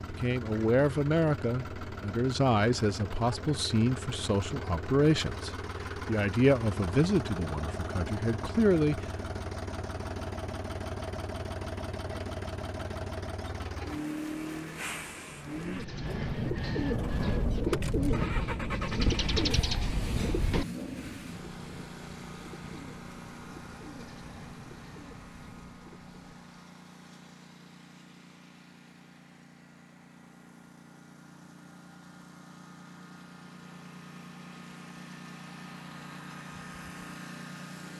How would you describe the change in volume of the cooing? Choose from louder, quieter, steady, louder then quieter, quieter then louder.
quieter.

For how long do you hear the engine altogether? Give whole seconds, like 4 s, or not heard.
38 s.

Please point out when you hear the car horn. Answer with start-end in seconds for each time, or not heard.
not heard.